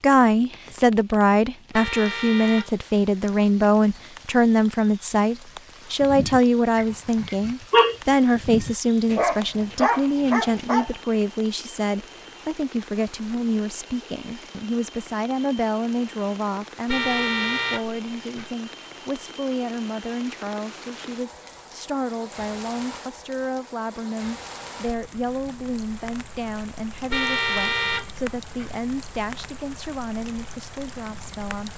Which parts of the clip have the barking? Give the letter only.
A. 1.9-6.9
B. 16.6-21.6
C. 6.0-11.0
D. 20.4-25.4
C.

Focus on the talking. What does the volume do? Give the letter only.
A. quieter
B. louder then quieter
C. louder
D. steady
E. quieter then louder
A.